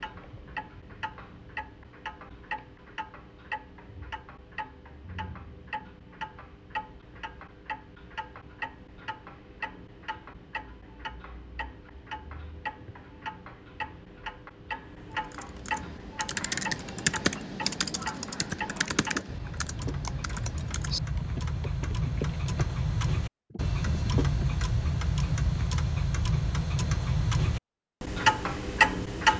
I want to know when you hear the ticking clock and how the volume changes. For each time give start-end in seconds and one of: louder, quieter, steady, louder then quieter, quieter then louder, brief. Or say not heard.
0.0-29.3 louder.